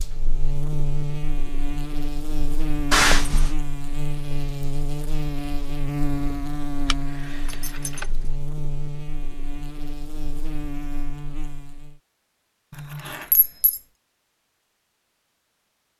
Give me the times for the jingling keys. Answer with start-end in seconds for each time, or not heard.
2.9-3.5, 6.9-8.1, 12.7-13.8.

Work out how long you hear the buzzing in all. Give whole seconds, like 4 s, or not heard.
12 s.